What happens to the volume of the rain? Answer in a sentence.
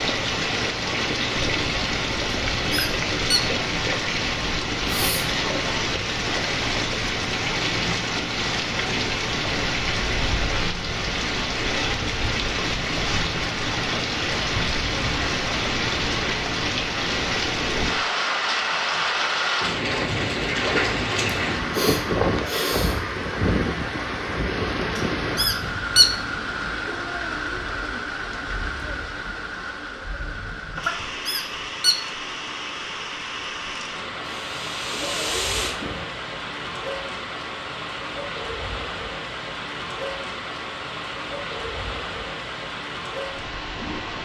The volume of the rain goes down.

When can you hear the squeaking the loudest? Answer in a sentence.
The volume of the squeaking peaks at 26 seconds.